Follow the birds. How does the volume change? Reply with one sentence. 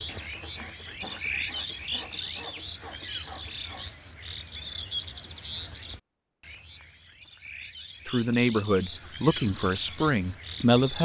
The loudness of the birds goes down, then up.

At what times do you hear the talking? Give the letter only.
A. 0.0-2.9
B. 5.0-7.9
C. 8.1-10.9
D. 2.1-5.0
C.